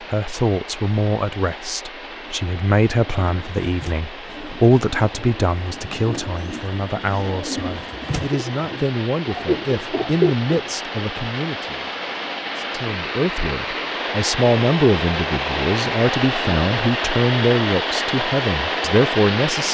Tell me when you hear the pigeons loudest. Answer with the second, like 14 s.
10 s.